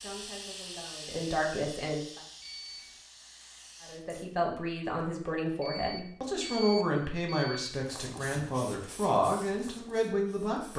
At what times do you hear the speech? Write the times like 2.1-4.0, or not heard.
0.0-2.2, 3.8-10.7.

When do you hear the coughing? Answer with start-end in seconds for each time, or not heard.
not heard.